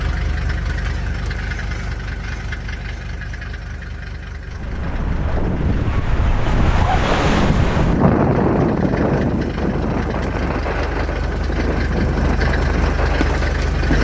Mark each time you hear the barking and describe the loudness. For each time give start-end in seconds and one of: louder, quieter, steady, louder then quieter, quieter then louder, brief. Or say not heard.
not heard.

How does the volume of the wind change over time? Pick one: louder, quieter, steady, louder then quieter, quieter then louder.
louder then quieter.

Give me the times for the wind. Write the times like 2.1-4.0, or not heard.
4.4-13.9.